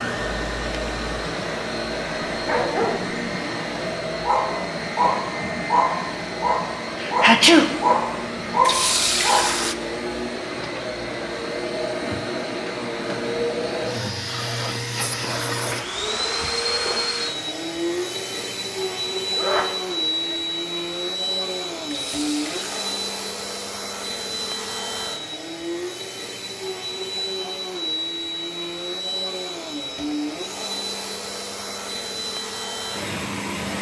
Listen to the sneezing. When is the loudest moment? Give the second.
7 s.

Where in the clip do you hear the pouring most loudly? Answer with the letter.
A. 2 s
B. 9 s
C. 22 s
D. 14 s
B.